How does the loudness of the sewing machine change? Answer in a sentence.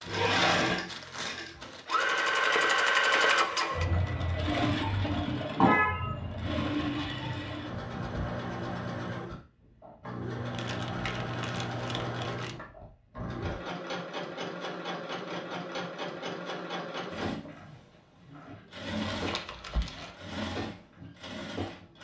The volume of the sewing machine goes down.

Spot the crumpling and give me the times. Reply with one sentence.
You can hear the crumpling from 0.0 to 1.9 s, from 10.5 to 12.6 s and from 19.1 to 20.1 s.